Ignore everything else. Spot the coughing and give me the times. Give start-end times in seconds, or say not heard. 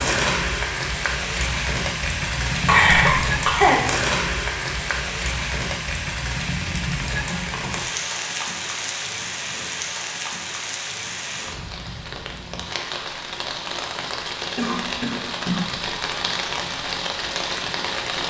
2.6-3.9, 7.2-7.8, 14.6-15.8.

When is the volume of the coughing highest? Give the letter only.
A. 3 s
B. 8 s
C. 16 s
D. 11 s
A.